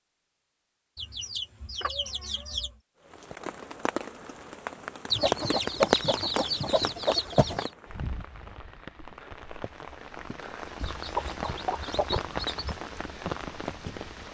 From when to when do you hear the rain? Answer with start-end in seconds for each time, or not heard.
3.1-14.3.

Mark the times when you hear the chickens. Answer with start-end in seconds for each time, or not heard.
0.9-2.8, 5.1-7.7, 10.8-12.8.